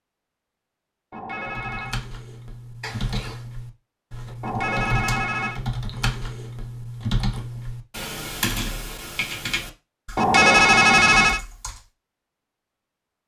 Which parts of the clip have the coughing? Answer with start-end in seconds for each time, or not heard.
2.8-3.5.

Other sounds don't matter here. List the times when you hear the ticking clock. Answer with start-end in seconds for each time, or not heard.
not heard.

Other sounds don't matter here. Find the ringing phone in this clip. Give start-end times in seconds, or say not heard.
1.1-1.9, 4.4-5.5, 10.2-11.4.